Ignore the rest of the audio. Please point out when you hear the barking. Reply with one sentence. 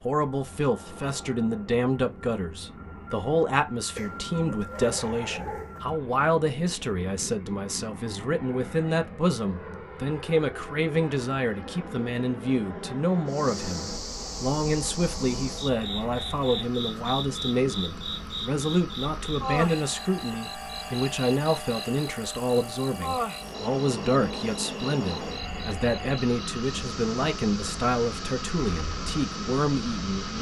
You can hear the barking from 4.0 to 5.8 s.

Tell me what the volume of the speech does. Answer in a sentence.
The loudness of the speech stays about the same.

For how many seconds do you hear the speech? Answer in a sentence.
The speech can be heard for 30 seconds in total.